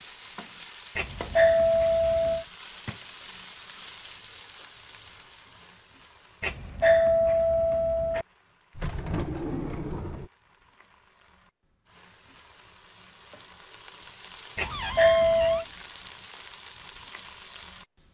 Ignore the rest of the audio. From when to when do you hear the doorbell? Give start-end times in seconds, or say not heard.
0.9-2.5, 6.4-8.2, 14.6-15.7.